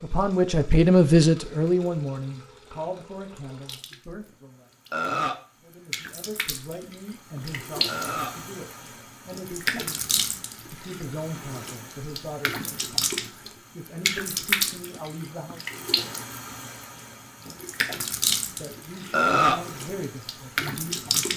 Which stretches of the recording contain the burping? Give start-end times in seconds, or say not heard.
4.9-5.4, 7.8-8.4, 19.1-19.6.